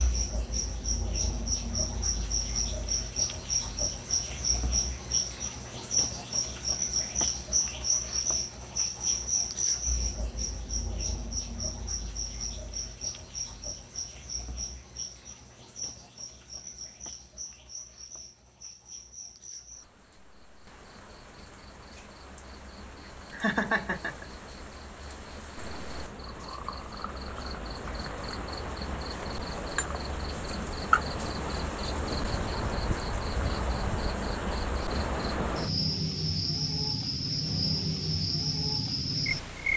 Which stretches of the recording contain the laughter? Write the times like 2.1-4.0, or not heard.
23.3-24.2.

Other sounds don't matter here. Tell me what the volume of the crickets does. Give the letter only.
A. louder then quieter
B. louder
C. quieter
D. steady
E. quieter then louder
E.